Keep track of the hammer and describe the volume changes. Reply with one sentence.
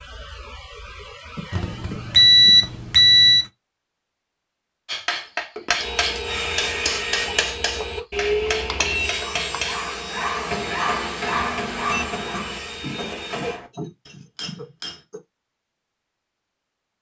The volume of the hammer goes down.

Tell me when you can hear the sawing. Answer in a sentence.
You can hear the sawing from 5.8 to 13.6 s.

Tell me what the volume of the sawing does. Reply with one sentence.
The loudness of the sawing goes down.